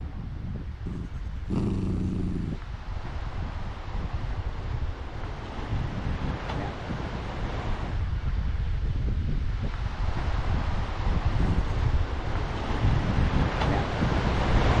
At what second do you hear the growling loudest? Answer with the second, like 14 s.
2 s.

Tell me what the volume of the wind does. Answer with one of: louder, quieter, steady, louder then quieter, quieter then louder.
louder.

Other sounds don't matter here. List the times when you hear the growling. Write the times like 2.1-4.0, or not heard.
0.8-2.6, 11.3-11.8.